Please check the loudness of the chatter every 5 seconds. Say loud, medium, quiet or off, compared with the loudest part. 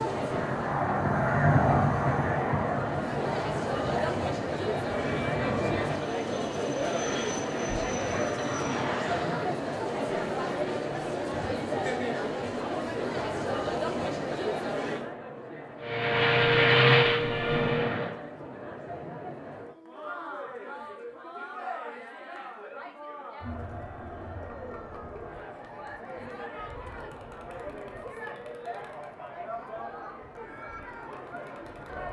loud, loud, loud, medium, medium, medium, medium.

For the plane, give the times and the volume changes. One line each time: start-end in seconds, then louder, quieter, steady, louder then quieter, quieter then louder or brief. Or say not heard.
0.0-9.6 quieter
15.8-18.1 brief.